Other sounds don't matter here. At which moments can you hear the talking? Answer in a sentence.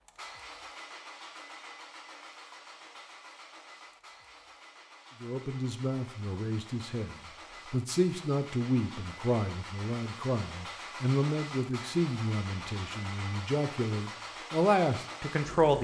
The talking can be heard from 5.2 to 15.7 s.